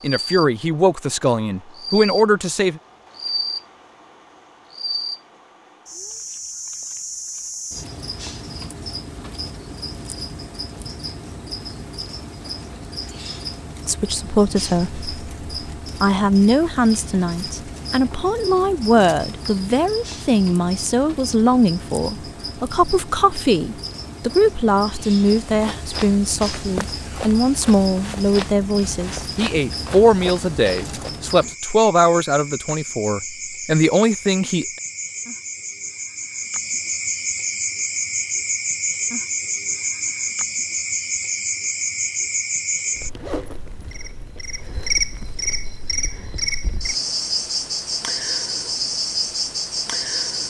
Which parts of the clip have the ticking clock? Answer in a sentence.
The ticking clock can't be heard in this clip.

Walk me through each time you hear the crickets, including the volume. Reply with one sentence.
The crickets can be heard from 0.0 to 50.4 s, getting louder.